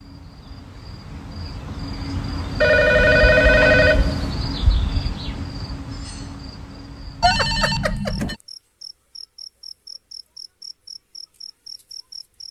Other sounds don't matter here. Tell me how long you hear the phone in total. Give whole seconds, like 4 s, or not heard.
3 s.